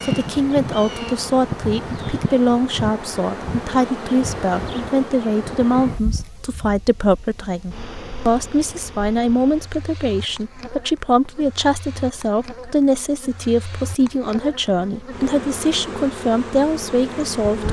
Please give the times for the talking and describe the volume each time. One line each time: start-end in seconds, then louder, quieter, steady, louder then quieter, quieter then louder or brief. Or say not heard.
0.0-17.6 steady.